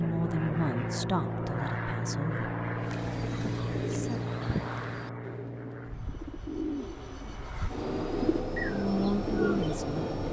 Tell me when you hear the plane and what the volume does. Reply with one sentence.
The plane can be heard from 0.0 to 10.2 s, getting quieter then louder.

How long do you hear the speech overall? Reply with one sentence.
You can hear the speech for 5 seconds altogether.